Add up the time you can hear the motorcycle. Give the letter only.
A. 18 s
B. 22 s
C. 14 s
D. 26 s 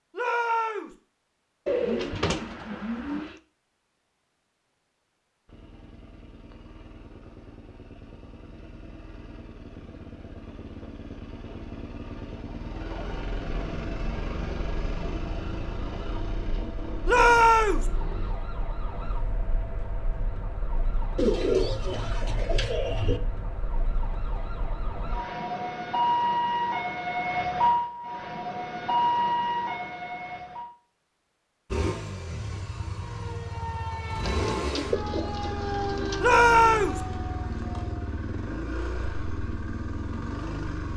B.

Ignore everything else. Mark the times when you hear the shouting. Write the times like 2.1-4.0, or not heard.
0.1-0.9, 17.1-17.9, 36.2-37.0.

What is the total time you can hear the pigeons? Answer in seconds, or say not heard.
6 s.